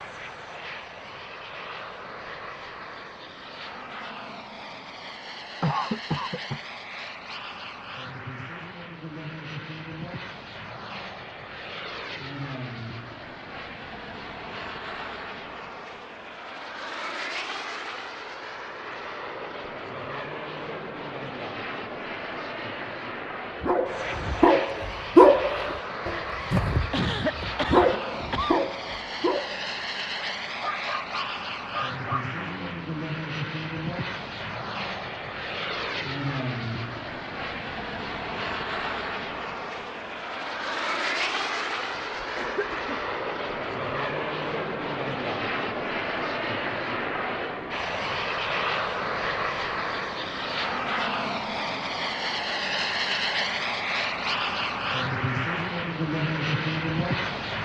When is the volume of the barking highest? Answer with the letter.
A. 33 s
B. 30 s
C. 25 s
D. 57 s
C.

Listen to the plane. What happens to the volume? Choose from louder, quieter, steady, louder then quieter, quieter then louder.
louder.